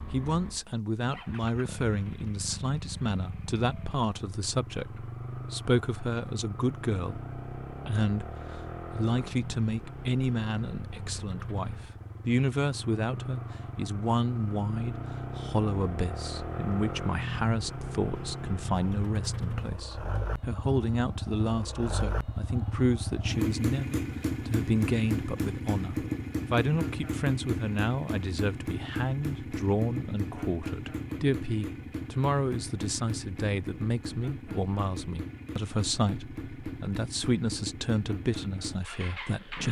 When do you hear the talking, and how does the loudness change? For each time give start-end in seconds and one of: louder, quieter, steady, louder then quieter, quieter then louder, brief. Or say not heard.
0.0-39.6 steady.